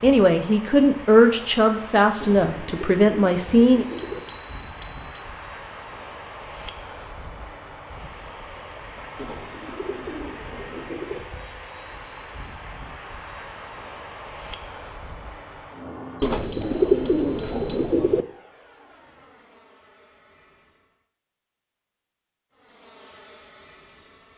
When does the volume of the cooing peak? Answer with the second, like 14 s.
17 s.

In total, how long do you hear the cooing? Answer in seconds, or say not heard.
6 s.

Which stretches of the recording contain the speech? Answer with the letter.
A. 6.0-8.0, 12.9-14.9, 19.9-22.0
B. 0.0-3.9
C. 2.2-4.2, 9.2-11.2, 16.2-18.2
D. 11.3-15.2
B.